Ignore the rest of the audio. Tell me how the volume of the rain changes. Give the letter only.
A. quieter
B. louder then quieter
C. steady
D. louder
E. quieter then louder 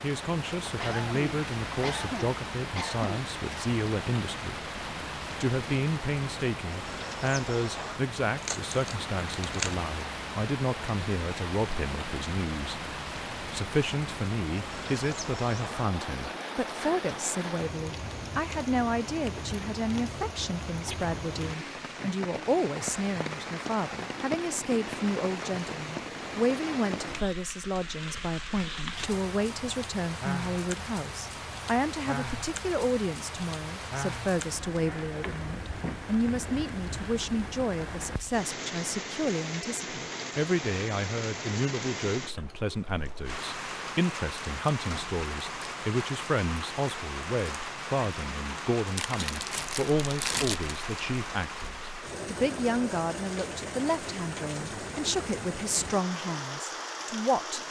C.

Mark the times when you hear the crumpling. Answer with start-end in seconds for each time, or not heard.
8.3-9.8, 49.0-50.8.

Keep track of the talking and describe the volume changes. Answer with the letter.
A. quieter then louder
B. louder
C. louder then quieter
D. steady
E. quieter
D.